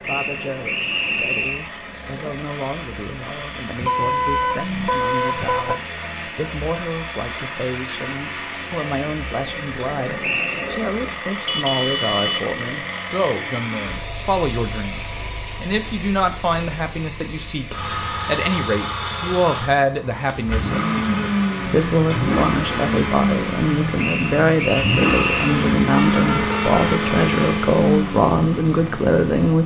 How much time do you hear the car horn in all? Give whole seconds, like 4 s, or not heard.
4 s.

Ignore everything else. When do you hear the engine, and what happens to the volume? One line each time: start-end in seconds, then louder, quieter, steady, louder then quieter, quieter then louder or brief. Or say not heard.
0.0-29.6 louder.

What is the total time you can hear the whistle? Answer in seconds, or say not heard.
4 s.